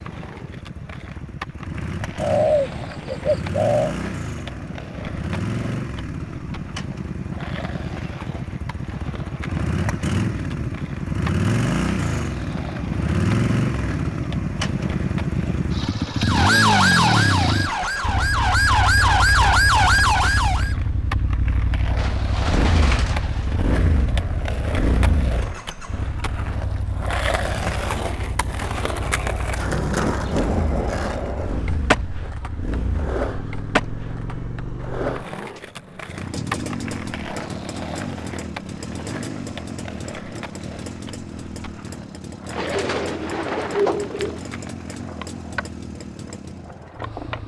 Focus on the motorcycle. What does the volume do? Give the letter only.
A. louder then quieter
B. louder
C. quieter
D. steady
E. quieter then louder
A.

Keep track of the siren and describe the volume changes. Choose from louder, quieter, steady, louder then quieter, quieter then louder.
quieter then louder.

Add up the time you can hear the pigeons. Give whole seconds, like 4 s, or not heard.
5 s.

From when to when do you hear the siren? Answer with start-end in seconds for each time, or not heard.
16.2-20.8.